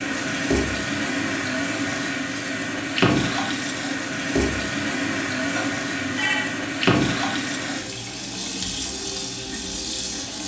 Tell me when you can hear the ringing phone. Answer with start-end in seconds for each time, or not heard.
5.5-6.5.